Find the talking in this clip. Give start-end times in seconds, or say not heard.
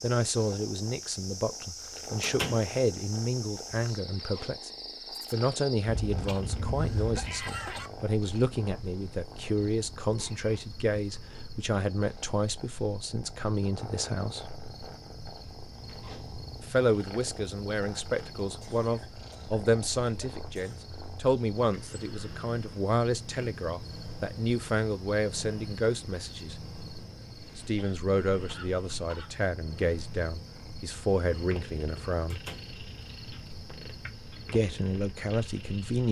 0.0-4.7, 5.3-14.5, 16.6-26.6, 27.6-32.4, 34.5-36.0.